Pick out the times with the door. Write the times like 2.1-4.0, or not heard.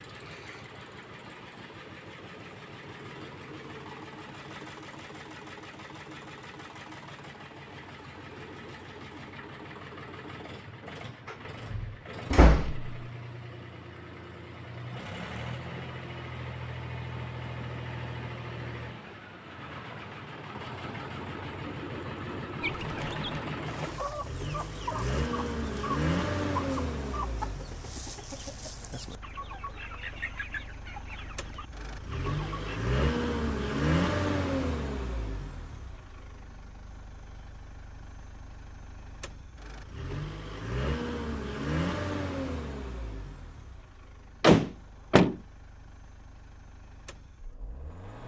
11.2-12.9, 44.4-45.4.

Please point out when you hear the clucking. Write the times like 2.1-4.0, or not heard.
22.6-32.8.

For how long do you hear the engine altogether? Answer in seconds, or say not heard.
48 s.